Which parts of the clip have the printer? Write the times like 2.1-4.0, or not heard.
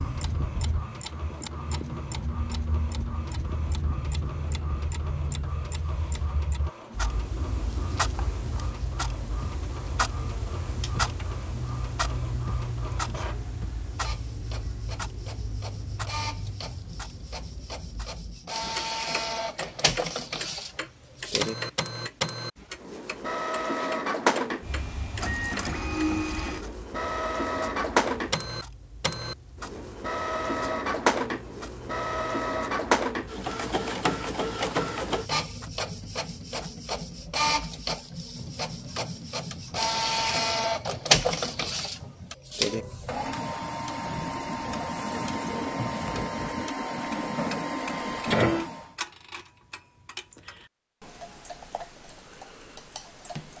0.0-48.9.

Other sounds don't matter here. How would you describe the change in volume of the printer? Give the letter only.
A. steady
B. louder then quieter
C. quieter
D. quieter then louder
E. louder
E.